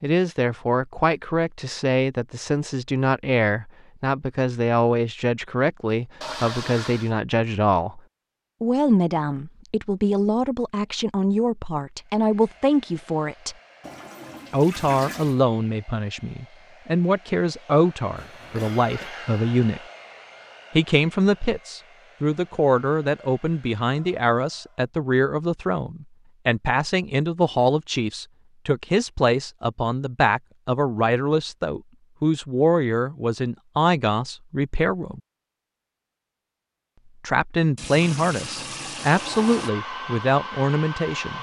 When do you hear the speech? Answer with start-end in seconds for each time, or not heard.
0.0-8.0, 8.6-13.6, 14.5-19.8, 20.8-35.2, 37.2-41.3.